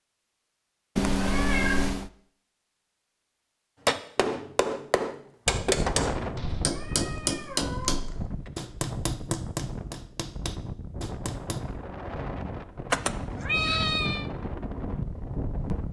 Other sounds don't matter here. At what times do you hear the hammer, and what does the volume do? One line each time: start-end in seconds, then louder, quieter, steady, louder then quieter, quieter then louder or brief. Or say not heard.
3.9-11.7 quieter.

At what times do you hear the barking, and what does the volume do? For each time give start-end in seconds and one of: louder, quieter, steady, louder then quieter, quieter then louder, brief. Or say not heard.
not heard.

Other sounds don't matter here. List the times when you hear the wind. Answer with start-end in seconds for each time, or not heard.
5.5-15.8.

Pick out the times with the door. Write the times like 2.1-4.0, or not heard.
not heard.